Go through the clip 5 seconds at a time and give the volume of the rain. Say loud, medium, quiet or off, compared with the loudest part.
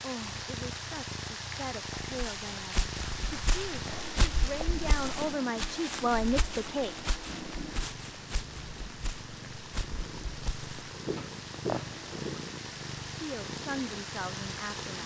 loud, medium, loud.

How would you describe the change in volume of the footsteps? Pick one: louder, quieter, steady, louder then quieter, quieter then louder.
quieter then louder.